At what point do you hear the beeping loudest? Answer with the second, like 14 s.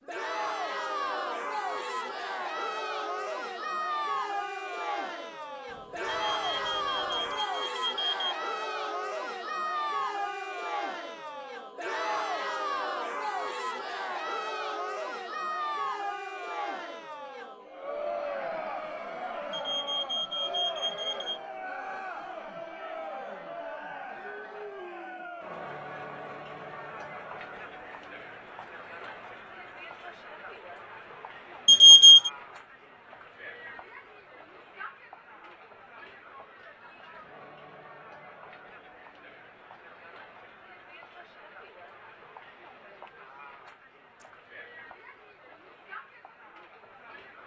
32 s.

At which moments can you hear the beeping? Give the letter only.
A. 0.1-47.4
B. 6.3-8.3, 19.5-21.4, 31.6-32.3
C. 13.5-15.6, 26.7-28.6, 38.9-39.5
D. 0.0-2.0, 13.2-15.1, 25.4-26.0
B.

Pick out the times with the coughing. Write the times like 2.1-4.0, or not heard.
not heard.